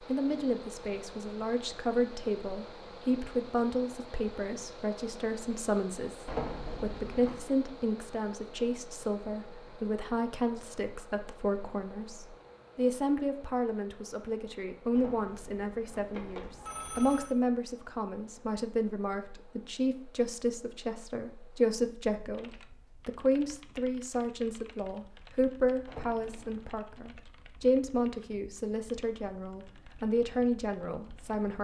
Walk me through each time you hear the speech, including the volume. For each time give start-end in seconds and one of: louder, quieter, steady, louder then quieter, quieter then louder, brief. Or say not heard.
0.1-31.5 steady.